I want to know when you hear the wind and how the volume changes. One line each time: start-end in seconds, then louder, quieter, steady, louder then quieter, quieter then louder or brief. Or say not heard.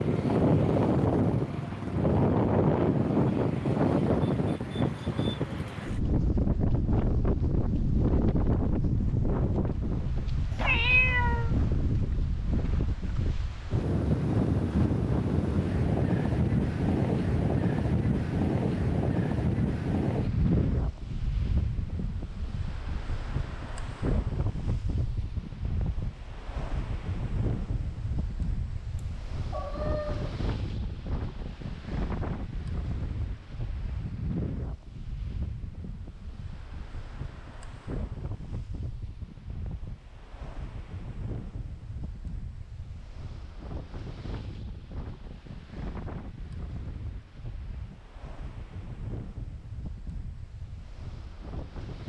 0.0-52.0 quieter.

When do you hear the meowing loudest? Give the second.
11 s.